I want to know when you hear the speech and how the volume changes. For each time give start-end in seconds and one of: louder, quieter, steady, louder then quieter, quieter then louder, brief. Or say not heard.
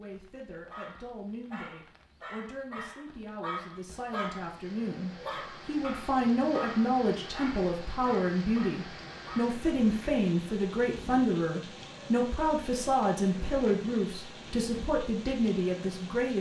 0.0-16.3 louder.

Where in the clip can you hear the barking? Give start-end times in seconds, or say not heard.
0.7-9.6.